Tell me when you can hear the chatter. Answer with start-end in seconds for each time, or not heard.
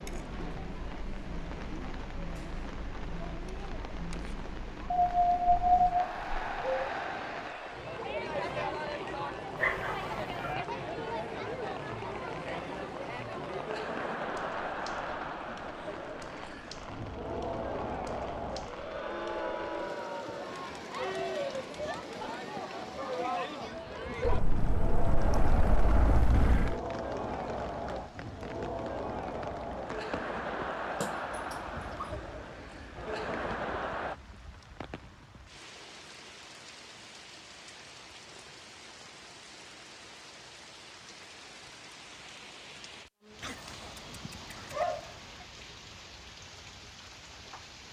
0.0-34.1.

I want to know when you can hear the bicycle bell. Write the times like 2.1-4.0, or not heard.
not heard.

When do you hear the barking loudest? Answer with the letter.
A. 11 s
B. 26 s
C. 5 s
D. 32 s
C.